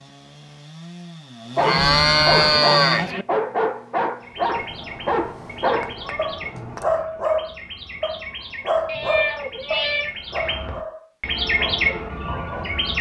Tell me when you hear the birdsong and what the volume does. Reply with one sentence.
The birdsong can be heard from 4.2 to 12.9 s, getting louder.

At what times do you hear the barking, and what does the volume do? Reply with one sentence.
The barking can be heard from 1.6 to 12.7 s, getting quieter.